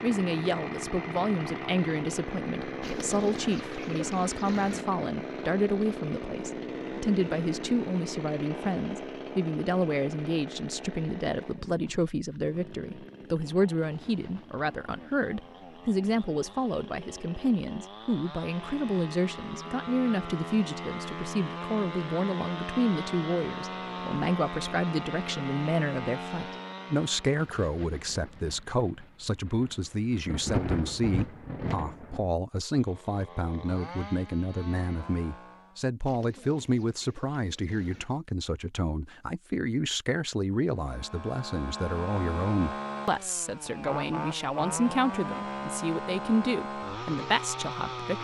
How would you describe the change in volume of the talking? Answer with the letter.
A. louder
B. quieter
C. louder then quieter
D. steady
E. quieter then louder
D.